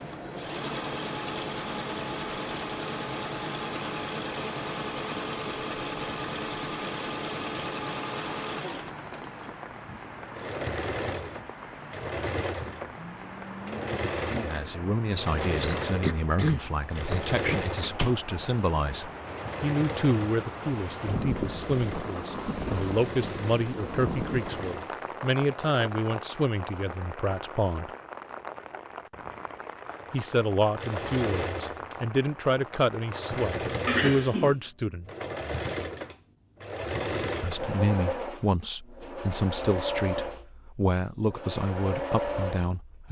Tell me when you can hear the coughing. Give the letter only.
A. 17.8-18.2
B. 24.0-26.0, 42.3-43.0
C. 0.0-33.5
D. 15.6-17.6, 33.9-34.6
D.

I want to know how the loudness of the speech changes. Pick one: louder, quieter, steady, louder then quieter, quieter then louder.
steady.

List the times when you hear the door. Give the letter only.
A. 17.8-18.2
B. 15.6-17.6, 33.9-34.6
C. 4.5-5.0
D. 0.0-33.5
A.